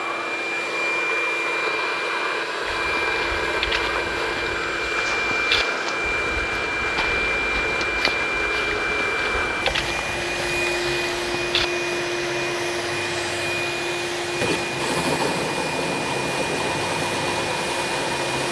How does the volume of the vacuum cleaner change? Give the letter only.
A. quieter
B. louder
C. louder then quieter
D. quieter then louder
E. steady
E.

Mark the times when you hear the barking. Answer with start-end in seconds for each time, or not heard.
not heard.